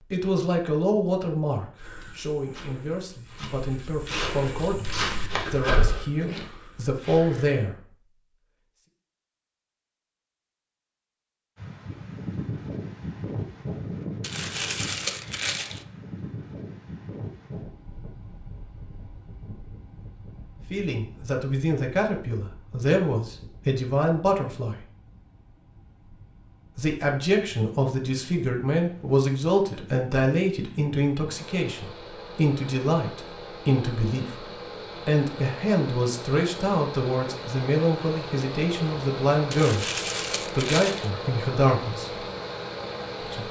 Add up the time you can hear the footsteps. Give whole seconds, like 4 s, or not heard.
6 s.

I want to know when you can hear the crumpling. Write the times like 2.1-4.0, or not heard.
14.2-15.8, 39.5-41.1.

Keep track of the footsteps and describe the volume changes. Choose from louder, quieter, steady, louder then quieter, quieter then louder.
louder then quieter.